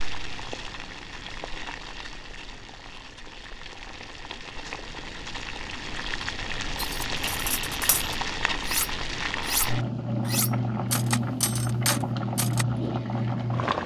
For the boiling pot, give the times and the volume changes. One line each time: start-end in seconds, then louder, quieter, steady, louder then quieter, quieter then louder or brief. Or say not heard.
0.0-13.8 louder.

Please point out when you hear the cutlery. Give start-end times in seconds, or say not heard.
6.8-12.7.